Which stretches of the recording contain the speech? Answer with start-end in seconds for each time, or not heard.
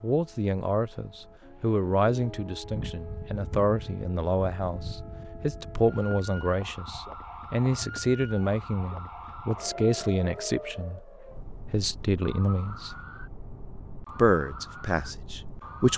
0.0-13.1, 14.2-15.9.